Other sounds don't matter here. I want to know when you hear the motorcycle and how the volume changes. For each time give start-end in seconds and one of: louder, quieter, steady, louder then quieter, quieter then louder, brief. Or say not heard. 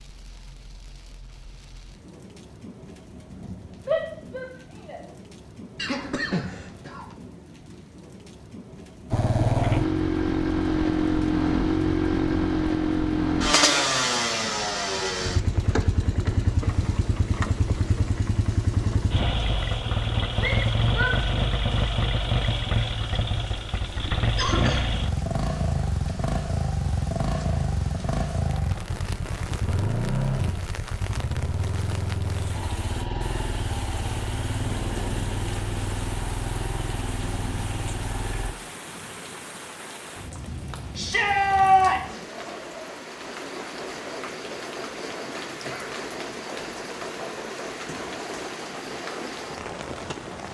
9.1-38.5 quieter.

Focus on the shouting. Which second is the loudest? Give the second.
42 s.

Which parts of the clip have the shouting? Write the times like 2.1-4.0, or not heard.
3.9-5.0, 20.4-21.1, 41.0-42.2.